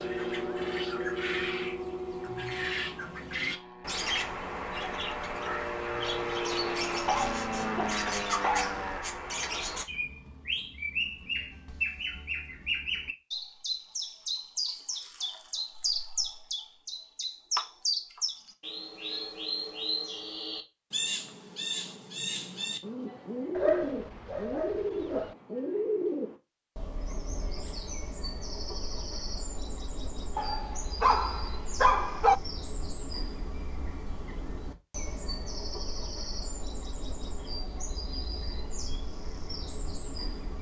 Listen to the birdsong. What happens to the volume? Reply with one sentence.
The loudness of the birdsong goes down.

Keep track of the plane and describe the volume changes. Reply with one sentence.
The volume of the plane goes down, then up.